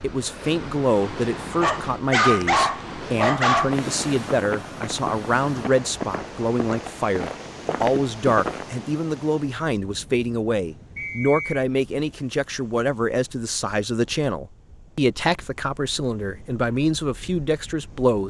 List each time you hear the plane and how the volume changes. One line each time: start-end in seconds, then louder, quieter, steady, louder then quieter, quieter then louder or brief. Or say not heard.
not heard.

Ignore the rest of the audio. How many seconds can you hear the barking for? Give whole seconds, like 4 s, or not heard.
2 s.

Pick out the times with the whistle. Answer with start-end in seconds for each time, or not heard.
10.9-11.7.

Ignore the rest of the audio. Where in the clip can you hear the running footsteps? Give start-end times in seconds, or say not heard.
3.5-8.7.